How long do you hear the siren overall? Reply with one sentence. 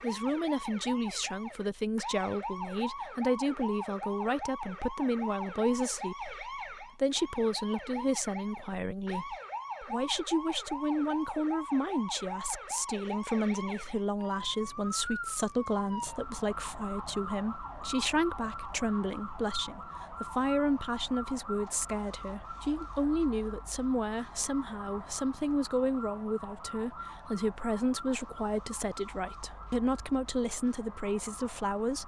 You can hear the siren for 32 seconds altogether.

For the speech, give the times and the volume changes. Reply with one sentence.
The speech can be heard from 0.0 to 32.0 s, at a steady volume.